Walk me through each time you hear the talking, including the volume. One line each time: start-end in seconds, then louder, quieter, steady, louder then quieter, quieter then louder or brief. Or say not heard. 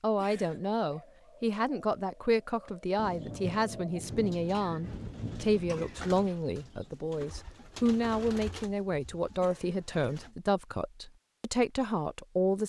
0.0-12.6 steady.